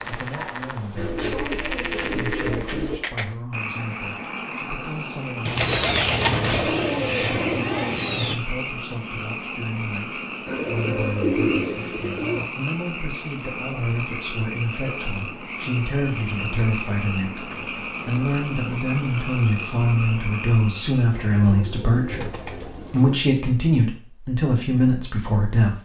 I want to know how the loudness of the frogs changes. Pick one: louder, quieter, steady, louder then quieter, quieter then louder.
steady.